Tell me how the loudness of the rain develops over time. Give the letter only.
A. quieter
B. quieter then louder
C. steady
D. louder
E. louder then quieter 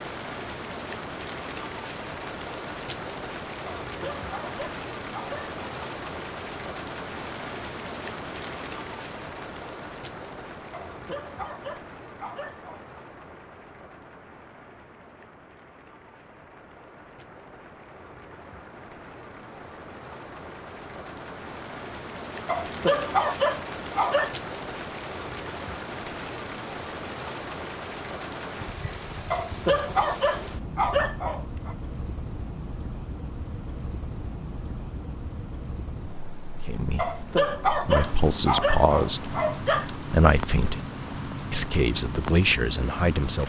B.